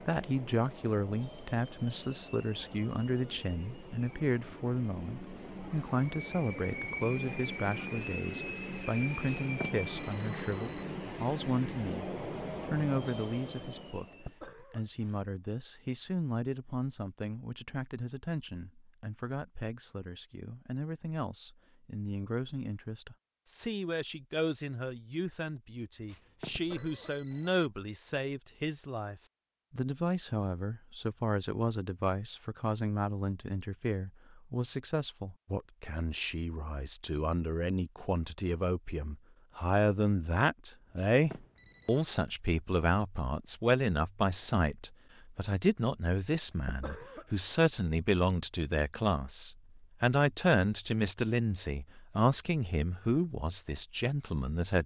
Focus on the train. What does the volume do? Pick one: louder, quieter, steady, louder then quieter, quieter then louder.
louder.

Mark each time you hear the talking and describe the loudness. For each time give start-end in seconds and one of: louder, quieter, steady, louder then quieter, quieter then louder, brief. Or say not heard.
0.1-14.1 steady
14.7-54.8 louder.